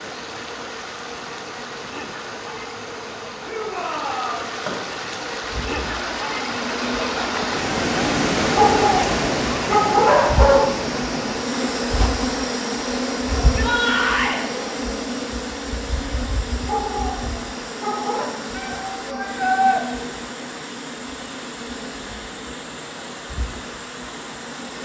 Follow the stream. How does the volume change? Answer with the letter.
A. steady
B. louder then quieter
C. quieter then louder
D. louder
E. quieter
B.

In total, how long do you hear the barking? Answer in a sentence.
The barking can be heard for 4 seconds in total.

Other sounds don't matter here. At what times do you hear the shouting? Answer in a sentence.
You can hear the shouting from 3.5 to 4.5 s, from 13.4 to 14.4 s and from 18.5 to 19.8 s.